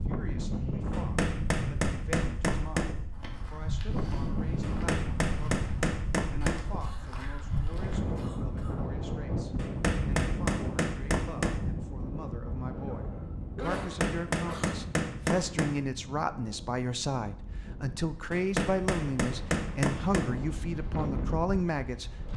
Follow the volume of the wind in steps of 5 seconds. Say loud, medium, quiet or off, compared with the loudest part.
loud, loud, loud, medium, loud.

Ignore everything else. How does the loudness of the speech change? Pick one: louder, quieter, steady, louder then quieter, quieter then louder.
louder.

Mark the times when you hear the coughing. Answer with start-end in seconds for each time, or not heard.
6.8-8.8, 12.8-14.8.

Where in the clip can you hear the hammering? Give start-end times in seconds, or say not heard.
0.9-3.0, 4.6-6.7, 9.6-11.6, 13.8-15.8, 18.3-20.3.